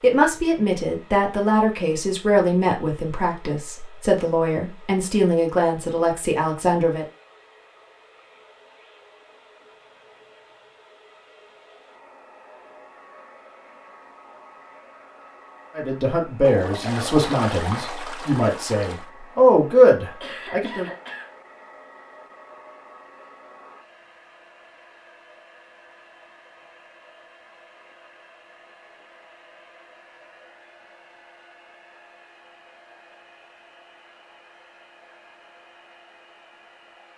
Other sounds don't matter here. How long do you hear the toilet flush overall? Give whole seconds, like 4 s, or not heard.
3 s.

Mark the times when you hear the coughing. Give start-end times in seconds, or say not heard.
20.2-21.4.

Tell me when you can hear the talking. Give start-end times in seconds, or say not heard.
0.0-7.0, 15.8-20.9.